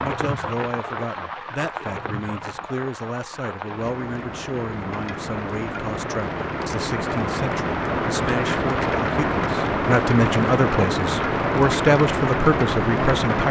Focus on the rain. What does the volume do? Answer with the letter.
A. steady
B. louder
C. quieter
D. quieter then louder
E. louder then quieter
B.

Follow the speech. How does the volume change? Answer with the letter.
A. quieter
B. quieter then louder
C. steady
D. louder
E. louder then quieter
D.